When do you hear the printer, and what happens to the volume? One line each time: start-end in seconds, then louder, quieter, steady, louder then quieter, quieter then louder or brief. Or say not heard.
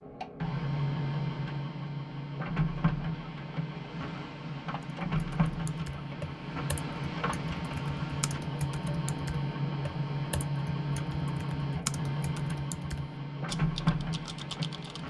0.0-15.0 steady.